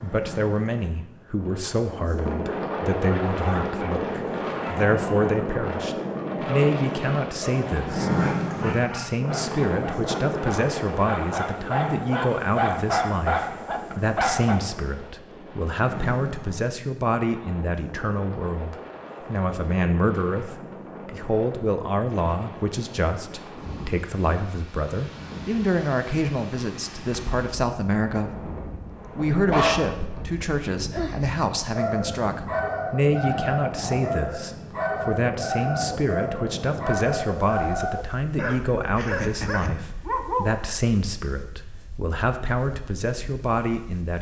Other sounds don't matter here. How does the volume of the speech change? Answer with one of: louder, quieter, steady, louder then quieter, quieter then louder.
steady.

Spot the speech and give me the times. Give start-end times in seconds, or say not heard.
0.0-28.6, 29.1-44.1.